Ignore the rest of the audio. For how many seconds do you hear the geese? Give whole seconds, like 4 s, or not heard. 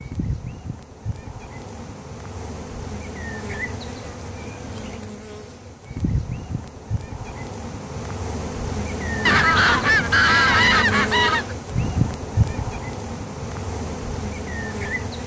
2 s.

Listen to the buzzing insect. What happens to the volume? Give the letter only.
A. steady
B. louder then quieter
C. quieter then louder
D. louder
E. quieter
D.